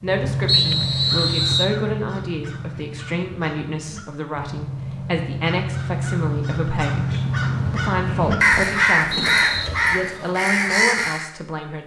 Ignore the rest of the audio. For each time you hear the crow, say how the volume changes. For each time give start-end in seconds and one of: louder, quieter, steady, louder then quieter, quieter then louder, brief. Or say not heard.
0.0-11.3 quieter then louder.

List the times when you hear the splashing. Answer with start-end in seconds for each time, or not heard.
not heard.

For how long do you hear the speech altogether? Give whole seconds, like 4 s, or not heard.
12 s.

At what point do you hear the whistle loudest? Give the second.
1 s.